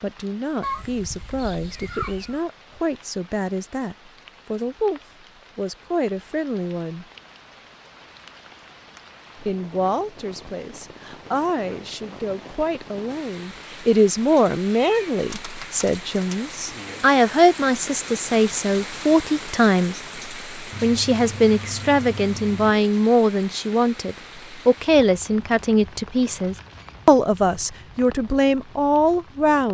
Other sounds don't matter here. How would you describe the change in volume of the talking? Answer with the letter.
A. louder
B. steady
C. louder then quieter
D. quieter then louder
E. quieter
A.